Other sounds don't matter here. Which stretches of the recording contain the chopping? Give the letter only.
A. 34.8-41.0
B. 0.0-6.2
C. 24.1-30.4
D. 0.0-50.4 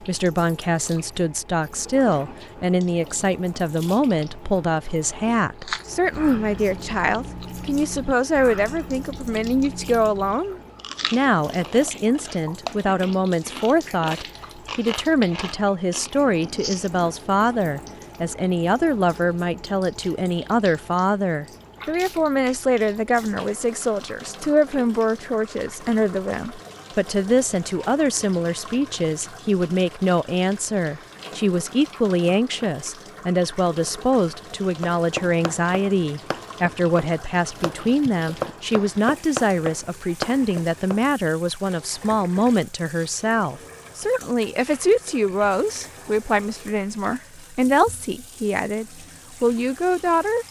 A.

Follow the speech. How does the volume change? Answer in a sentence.
The loudness of the speech stays about the same.